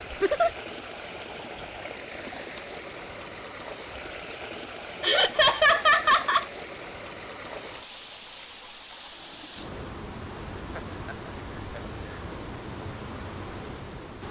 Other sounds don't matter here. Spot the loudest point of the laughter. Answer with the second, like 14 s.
6 s.